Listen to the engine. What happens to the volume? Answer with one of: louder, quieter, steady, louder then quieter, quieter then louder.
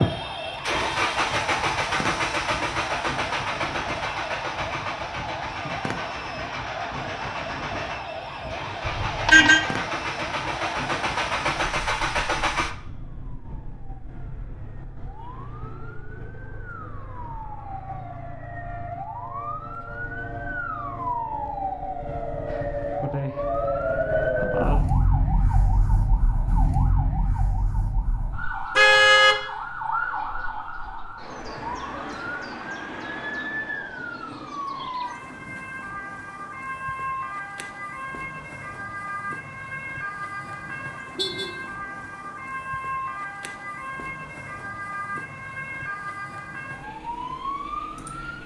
quieter then louder.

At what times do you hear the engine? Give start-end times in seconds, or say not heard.
0.0-12.8.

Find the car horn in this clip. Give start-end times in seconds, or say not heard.
8.8-9.6, 28.8-29.4, 41.1-41.6.